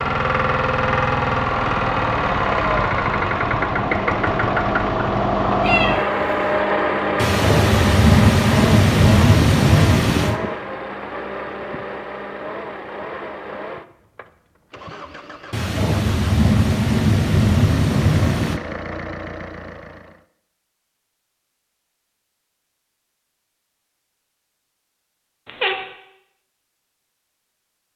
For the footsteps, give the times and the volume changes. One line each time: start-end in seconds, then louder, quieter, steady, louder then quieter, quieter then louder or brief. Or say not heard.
not heard.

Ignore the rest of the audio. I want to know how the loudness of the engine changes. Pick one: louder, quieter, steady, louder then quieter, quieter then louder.
quieter.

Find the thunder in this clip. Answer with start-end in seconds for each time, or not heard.
7.2-10.4, 15.5-18.6.